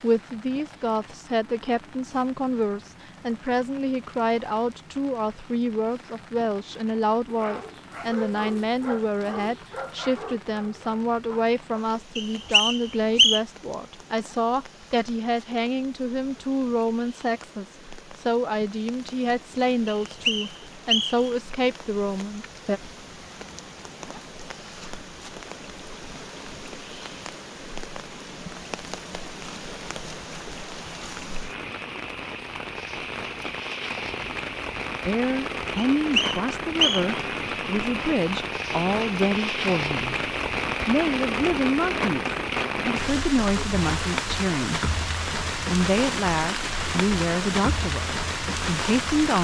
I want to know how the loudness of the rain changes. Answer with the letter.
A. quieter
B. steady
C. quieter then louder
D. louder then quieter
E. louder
E.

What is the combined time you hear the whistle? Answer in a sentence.
You can hear the whistle for 4 seconds altogether.